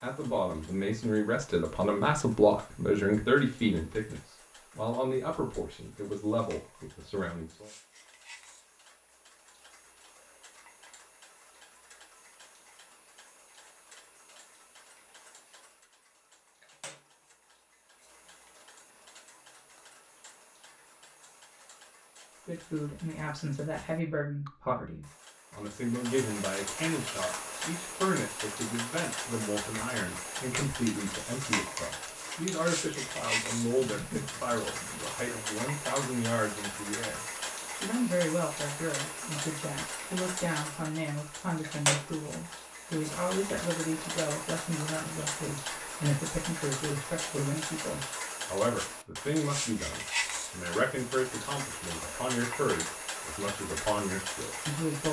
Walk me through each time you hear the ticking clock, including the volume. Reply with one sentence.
The ticking clock can be heard from 0.0 to 55.0 s, getting louder.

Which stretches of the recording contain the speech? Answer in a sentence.
You can hear the speech from 0.0 to 7.7 s and from 22.4 to 55.0 s.